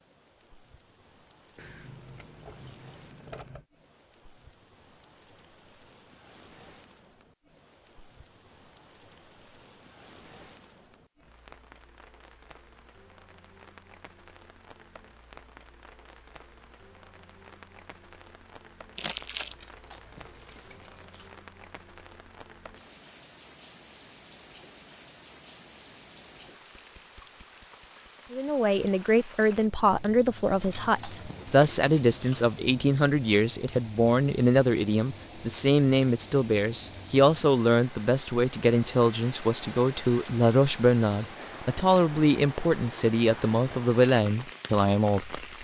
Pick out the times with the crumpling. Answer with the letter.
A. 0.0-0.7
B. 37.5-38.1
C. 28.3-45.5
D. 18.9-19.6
D.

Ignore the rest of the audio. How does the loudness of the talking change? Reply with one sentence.
The volume of the talking stays about the same.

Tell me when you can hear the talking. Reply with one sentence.
You can hear the talking from 28.3 to 45.5 s.